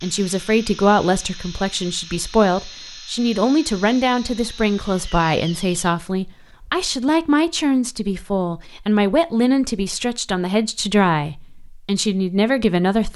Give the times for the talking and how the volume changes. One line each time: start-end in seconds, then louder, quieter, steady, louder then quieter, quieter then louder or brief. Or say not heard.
0.0-13.1 steady.